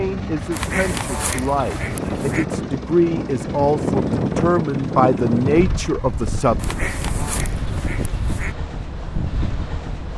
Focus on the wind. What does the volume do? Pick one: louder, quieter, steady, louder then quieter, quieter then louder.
louder then quieter.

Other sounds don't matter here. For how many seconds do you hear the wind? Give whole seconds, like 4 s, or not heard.
10 s.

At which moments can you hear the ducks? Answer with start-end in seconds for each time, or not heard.
0.5-2.5, 6.5-8.6.